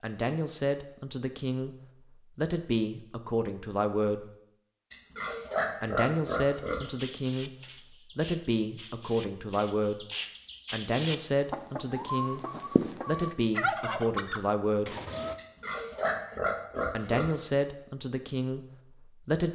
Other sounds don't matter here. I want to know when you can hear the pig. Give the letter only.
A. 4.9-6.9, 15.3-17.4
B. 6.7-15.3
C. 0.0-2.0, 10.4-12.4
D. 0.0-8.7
A.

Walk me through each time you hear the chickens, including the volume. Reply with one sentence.
You can hear the chickens from 6.7 to 15.3 s, getting louder.